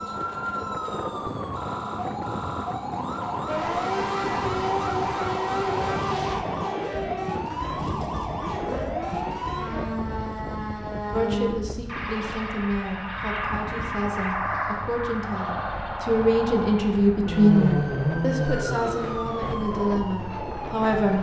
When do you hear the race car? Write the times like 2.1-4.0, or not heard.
3.5-9.8.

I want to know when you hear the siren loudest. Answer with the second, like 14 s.
18 s.